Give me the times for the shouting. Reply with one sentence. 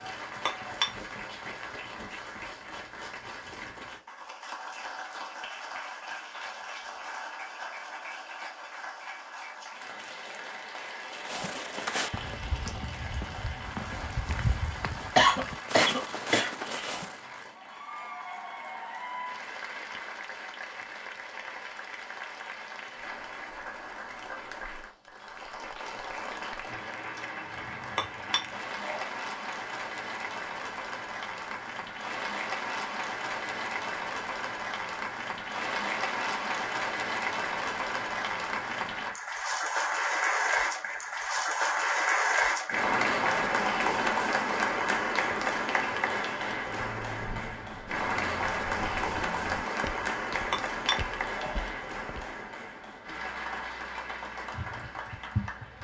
The shouting can't be heard in this clip.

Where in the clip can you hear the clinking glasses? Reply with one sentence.
The clinking glasses can be heard from 0.4 to 0.9 s, from 27.9 to 29.1 s and from 50.5 to 51.6 s.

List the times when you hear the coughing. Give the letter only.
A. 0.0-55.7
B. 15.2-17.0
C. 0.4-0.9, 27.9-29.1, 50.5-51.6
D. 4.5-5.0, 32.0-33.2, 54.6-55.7
B.